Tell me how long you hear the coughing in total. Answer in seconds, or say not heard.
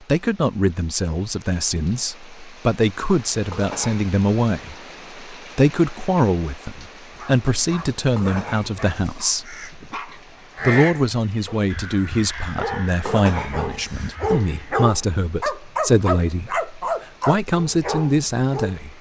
3 s.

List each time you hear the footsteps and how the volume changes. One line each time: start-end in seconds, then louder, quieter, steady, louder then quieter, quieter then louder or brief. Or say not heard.
not heard.